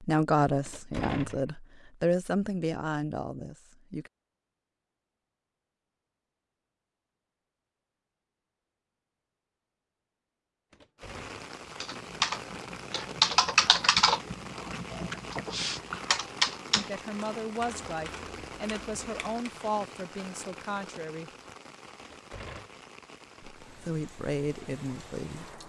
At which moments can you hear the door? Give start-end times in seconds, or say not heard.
0.7-1.6, 10.7-11.4, 22.0-22.7.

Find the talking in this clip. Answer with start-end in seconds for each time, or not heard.
0.0-4.1, 16.7-21.3, 23.6-25.6.